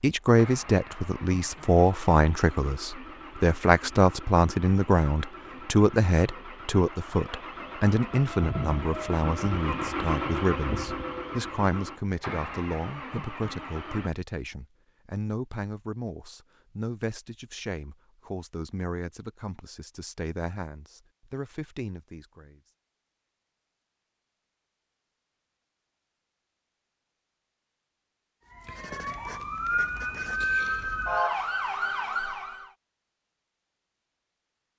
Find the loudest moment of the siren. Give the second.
31 s.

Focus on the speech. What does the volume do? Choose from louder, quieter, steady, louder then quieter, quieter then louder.
quieter.